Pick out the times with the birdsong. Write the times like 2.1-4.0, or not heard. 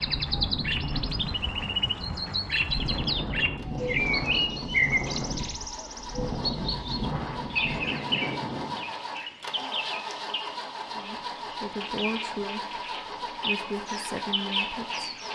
0.0-15.3.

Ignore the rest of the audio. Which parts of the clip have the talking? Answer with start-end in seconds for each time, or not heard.
10.9-15.3.